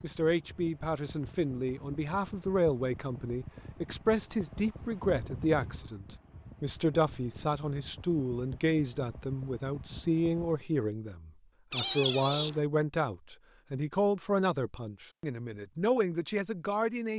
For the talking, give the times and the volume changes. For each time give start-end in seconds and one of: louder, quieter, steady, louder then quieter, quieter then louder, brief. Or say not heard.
0.0-17.1 steady.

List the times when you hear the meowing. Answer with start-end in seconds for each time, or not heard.
11.7-12.6.